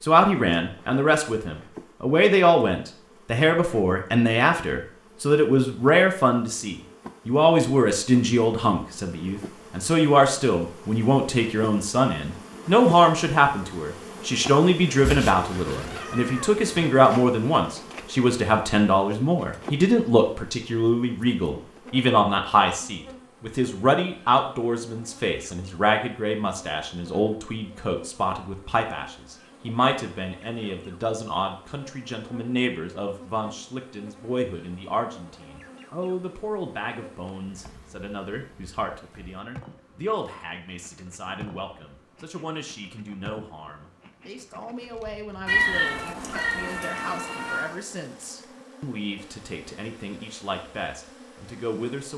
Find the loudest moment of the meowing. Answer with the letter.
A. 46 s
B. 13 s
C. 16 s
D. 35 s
A.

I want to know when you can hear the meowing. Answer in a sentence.
The meowing can be heard from 15.0 to 16.9 s and from 45.5 to 47.8 s.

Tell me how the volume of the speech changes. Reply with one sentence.
The loudness of the speech goes down.